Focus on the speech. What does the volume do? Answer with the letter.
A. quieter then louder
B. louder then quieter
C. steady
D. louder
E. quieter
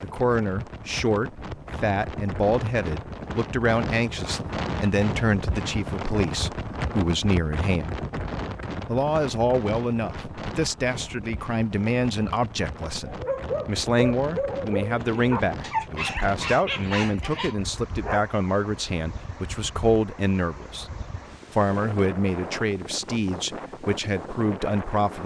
C.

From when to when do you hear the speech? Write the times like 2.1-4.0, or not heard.
0.0-8.0, 8.8-20.9, 21.5-25.2.